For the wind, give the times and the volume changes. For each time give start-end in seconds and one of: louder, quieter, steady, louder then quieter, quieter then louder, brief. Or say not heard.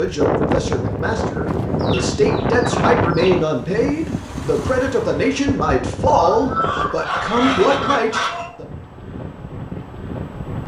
0.0-10.6 quieter.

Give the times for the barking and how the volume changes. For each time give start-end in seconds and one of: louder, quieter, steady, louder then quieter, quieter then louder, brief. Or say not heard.
not heard.